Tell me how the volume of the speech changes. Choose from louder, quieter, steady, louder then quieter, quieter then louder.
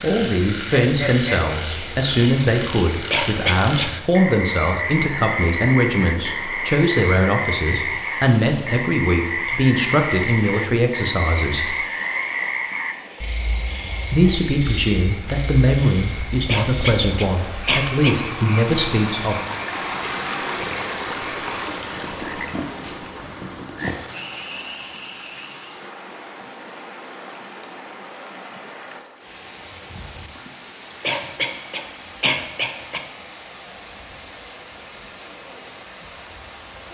steady.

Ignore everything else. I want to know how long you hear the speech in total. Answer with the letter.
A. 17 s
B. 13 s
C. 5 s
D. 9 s
A.